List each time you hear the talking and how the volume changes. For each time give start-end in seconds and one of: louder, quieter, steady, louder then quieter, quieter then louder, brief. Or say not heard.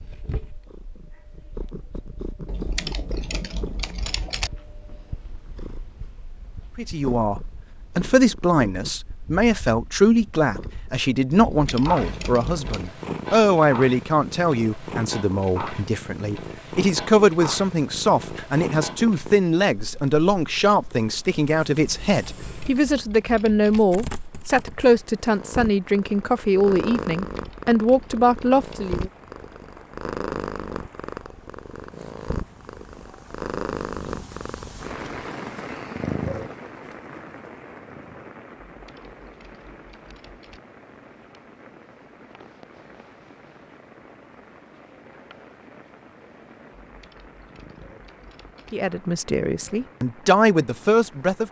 6.8-29.1 steady
48.7-51.4 brief.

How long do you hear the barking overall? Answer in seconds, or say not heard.
not heard.